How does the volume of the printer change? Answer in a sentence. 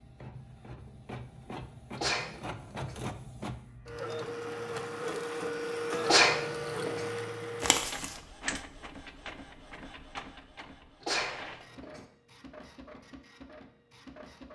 The volume of the printer goes up, then down.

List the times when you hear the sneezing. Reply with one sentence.
You can hear the sneezing from 1.9 to 3.0 s, from 6.0 to 7.1 s and from 11.0 to 12.1 s.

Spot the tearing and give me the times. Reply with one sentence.
You can hear the tearing from 7.6 to 8.2 s.